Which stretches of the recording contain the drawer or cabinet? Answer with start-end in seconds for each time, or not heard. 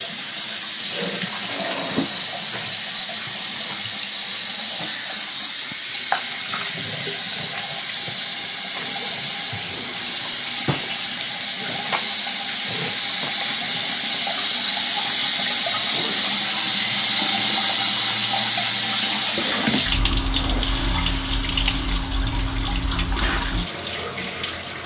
1.4-2.3, 9.7-11.2, 19.4-20.6.